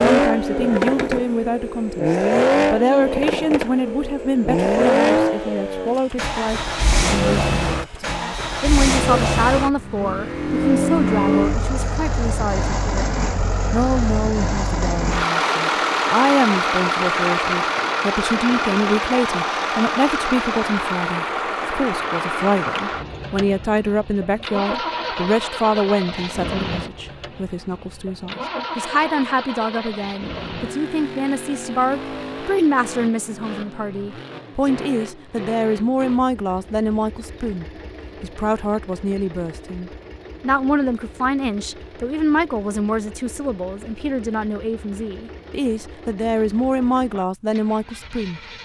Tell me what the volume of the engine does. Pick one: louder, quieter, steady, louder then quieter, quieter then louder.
quieter.